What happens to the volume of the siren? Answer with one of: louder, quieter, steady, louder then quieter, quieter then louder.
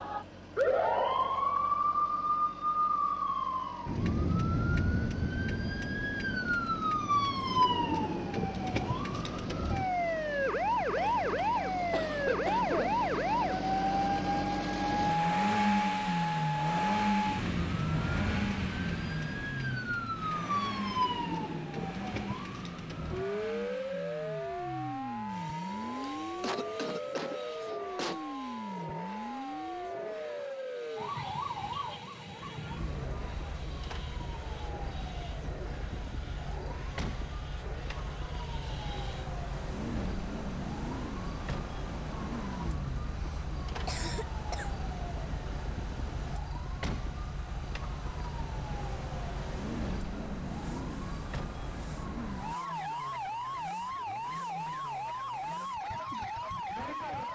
quieter.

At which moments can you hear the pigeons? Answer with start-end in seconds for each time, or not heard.
not heard.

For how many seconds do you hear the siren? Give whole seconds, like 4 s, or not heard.
57 s.